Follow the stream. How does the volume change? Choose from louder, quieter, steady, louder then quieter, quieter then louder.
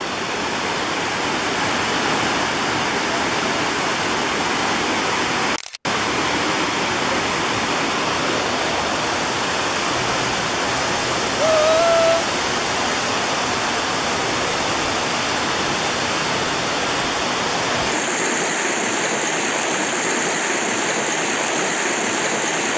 steady.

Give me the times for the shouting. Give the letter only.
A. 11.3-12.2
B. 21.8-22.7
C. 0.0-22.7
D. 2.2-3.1
A.